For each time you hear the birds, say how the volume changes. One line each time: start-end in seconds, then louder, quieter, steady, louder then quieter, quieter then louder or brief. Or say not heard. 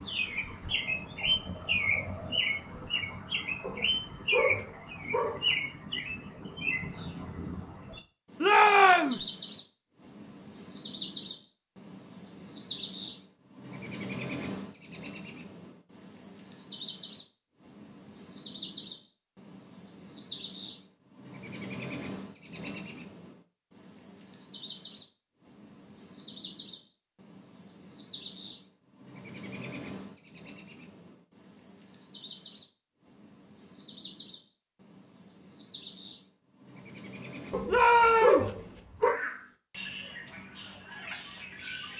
0.0-41.9 quieter.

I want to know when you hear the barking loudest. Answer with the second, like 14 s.
38 s.